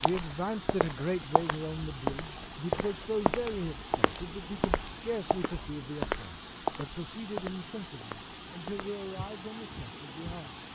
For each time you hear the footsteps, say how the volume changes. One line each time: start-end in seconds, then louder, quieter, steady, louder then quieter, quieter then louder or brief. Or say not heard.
0.0-10.7 quieter.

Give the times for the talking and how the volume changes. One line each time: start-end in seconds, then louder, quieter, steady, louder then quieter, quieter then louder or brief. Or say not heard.
0.0-10.7 quieter.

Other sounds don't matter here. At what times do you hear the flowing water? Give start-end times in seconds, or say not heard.
0.0-10.7.